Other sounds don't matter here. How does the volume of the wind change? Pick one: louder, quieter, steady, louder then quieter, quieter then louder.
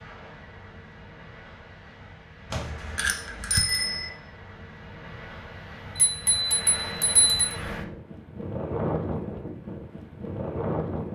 louder.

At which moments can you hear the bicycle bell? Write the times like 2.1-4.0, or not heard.
2.5-4.1, 6.0-7.5.